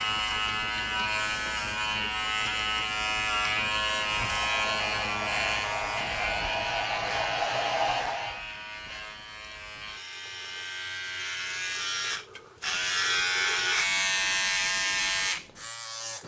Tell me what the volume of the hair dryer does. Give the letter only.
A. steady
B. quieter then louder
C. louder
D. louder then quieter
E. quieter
C.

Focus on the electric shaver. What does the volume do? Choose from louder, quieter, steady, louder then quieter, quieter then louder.
quieter then louder.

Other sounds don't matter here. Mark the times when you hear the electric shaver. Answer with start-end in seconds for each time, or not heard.
0.0-16.2.